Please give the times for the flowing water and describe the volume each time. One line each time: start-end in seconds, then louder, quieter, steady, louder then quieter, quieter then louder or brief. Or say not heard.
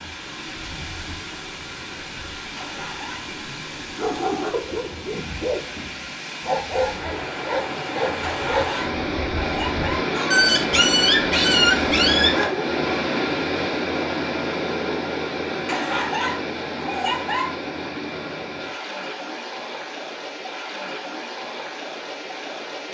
0.0-22.9 louder then quieter.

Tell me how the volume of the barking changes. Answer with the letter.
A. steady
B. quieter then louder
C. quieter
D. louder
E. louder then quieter
D.